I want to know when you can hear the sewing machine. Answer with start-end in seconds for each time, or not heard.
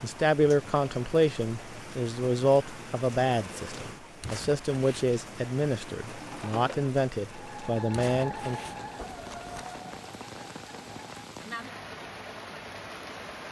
6.0-13.4.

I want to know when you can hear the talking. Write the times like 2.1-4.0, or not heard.
0.0-8.6.